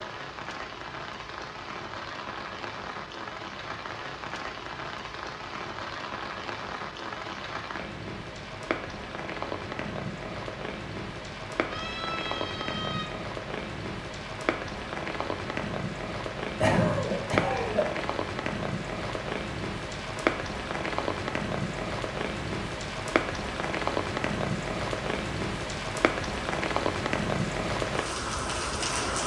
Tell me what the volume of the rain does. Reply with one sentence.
The loudness of the rain goes up.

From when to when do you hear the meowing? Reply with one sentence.
You can hear the meowing from 11.7 to 13.1 s.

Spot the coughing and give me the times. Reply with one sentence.
The coughing can be heard from 16.6 to 18.1 s.